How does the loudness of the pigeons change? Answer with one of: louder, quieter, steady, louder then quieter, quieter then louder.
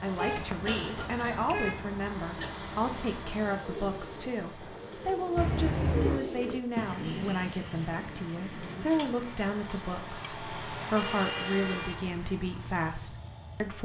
louder then quieter.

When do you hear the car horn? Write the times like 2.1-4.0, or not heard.
0.1-1.9, 5.3-6.2, 10.9-12.1.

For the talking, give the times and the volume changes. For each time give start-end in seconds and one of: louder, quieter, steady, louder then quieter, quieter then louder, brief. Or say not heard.
0.0-13.8 steady.